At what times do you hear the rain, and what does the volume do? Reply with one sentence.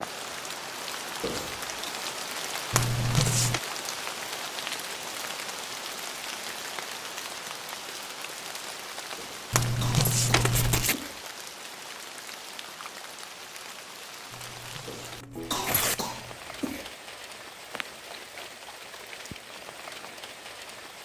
You can hear the rain from 0.0 to 21.0 s, getting quieter.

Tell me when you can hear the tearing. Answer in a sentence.
The tearing can be heard from 2.7 to 3.6 s, from 9.5 to 10.9 s and from 14.3 to 16.4 s.